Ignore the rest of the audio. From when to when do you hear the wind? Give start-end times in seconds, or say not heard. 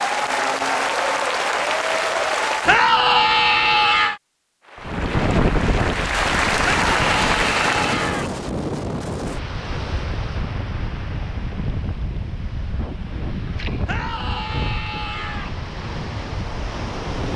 4.8-17.3.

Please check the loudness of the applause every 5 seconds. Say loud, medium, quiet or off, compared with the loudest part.
loud, loud, off, off.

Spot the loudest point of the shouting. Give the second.
3 s.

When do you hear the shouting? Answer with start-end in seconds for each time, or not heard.
2.6-4.2, 6.6-8.3, 13.8-15.5.